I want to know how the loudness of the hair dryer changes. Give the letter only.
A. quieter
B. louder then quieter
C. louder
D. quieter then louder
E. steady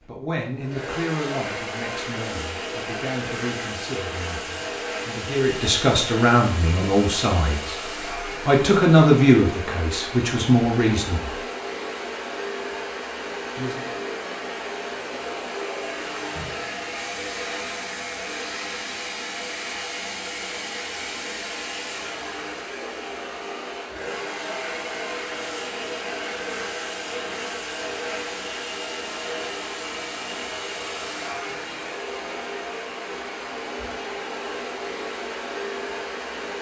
E.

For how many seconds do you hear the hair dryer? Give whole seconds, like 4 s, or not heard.
36 s.